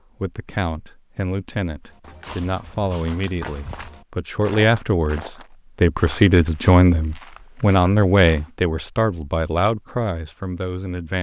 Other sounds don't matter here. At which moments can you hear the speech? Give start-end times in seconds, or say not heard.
0.2-11.1.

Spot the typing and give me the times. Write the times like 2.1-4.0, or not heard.
not heard.